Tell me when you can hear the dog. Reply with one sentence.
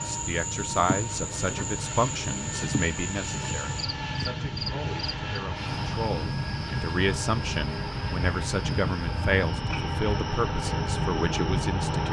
You can't hear the dog here.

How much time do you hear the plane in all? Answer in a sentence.
The plane can be heard for 12 seconds in total.